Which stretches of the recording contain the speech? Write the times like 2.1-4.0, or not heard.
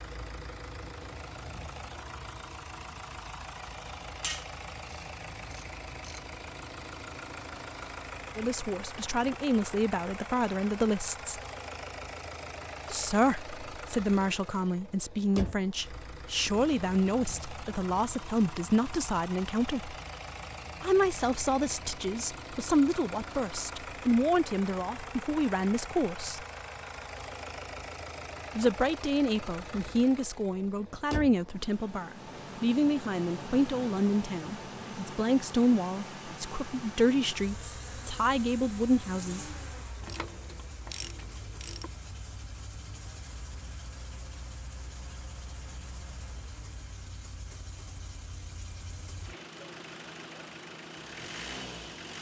8.3-11.4, 12.9-19.9, 20.8-26.4, 28.6-39.5.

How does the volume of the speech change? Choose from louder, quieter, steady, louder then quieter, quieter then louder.
steady.